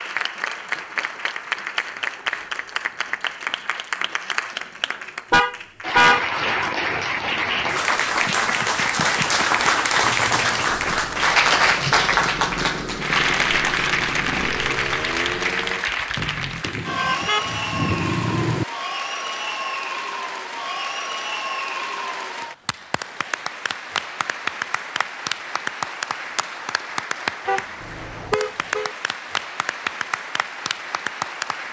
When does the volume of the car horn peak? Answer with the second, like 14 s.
6 s.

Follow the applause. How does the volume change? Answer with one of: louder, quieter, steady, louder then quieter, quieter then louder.
louder then quieter.